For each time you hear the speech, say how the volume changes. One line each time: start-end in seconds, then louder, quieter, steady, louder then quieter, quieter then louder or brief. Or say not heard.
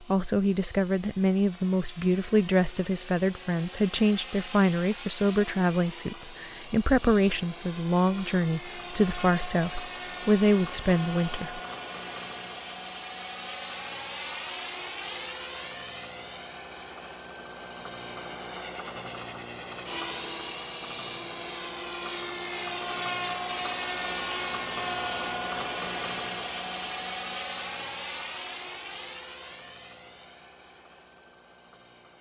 0.1-11.6 steady.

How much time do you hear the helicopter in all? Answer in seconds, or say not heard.
32 s.